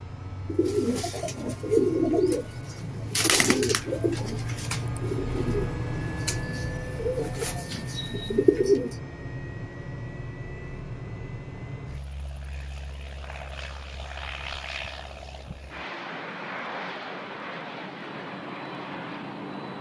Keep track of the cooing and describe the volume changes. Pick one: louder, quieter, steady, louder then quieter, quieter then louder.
quieter then louder.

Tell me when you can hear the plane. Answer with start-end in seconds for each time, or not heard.
0.0-19.7.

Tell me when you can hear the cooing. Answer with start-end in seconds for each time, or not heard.
0.5-8.9.